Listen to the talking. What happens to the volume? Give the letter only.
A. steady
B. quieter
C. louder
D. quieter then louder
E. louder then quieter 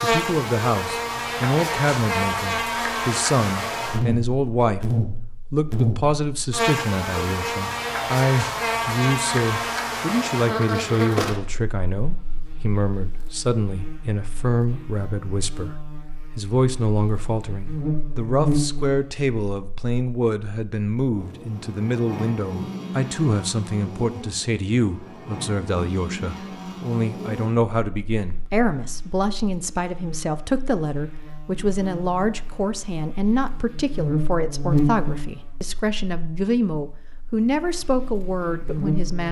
A.